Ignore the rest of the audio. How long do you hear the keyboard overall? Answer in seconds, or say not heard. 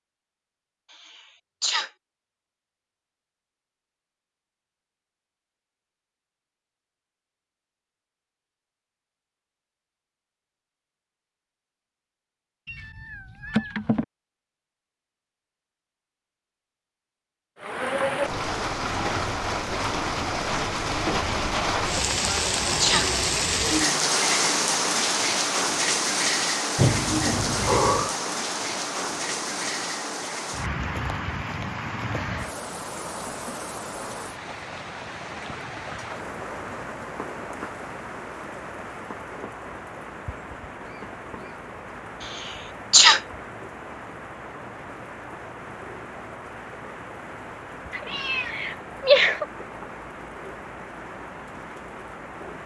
not heard.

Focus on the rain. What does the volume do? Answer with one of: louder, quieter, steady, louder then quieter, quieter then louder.
quieter.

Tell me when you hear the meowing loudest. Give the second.
49 s.